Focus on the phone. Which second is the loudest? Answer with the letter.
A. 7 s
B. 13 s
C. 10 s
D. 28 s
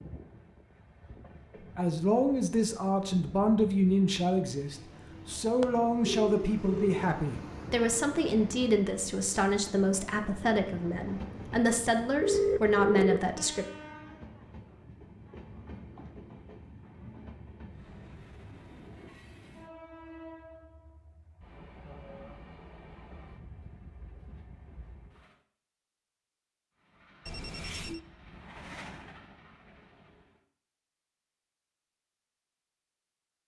B.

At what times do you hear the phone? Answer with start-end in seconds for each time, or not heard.
5.6-7.0, 12.2-13.3, 27.2-28.1.